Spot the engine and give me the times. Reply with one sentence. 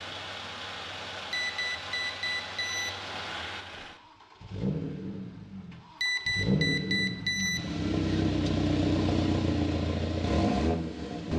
The engine can be heard from 0.0 to 11.3 s.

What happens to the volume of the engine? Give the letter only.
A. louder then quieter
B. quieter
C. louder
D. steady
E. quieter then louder
C.